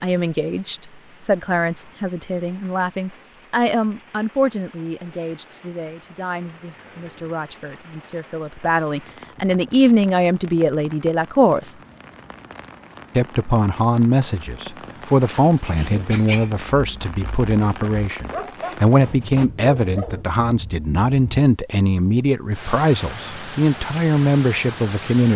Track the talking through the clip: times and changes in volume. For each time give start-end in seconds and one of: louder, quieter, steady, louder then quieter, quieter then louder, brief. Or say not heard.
0.0-11.8 quieter then louder
13.2-25.3 steady.